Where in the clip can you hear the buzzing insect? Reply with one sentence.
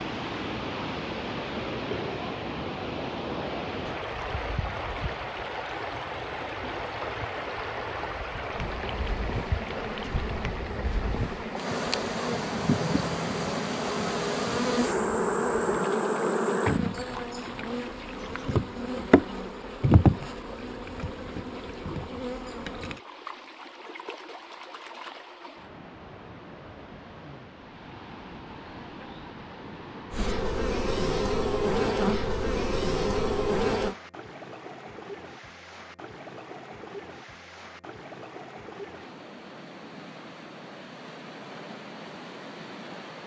You can hear the buzzing insect from 8.5 to 23.0 s and from 30.1 to 34.0 s.